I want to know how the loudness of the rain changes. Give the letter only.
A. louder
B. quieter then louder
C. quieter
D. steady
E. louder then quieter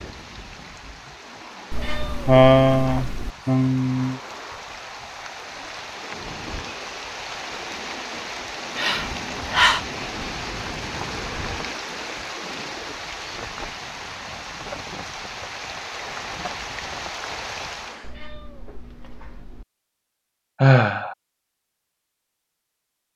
A.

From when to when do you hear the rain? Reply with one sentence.
The rain can be heard from 0.0 to 18.1 s.